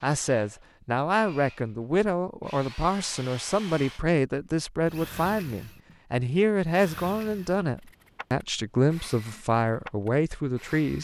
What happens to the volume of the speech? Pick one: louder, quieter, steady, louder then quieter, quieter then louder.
steady.